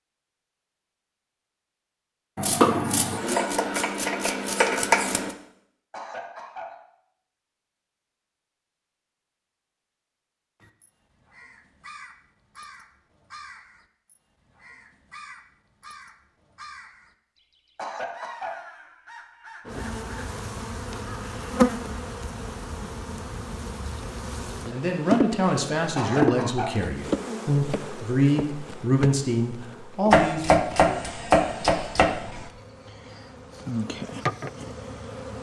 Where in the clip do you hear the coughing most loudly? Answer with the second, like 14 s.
26 s.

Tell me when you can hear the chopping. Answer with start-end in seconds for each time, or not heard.
2.4-5.3, 30.1-32.5.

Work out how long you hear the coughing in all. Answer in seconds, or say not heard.
3 s.